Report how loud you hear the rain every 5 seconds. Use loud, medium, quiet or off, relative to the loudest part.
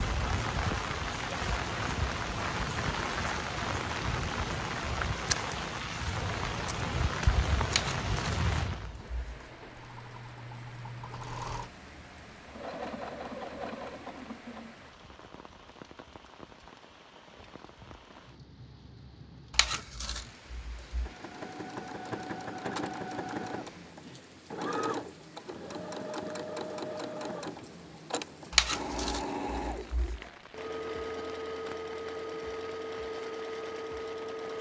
loud, loud, quiet, quiet, quiet, quiet, quiet.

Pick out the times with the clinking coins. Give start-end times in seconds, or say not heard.
7.7-9.5, 19.5-21.1, 28.5-30.2.